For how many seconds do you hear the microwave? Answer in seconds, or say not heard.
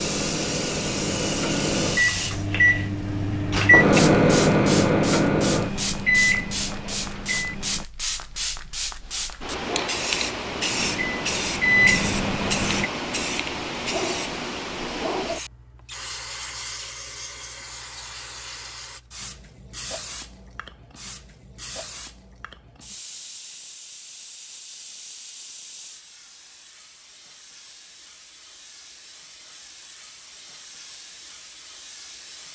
10 s.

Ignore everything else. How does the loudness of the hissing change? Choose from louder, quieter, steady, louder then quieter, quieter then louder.
quieter.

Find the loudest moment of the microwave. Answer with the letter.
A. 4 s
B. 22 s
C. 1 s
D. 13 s
A.